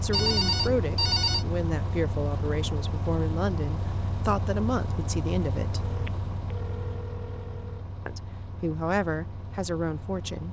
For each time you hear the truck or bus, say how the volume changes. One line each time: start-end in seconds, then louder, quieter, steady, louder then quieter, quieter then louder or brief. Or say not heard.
0.0-10.4 quieter.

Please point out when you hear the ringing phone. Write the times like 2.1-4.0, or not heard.
0.1-1.4, 5.8-7.8.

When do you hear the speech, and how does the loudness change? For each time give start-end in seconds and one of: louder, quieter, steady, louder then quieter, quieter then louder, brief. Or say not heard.
0.0-5.8 steady
8.1-10.4 brief.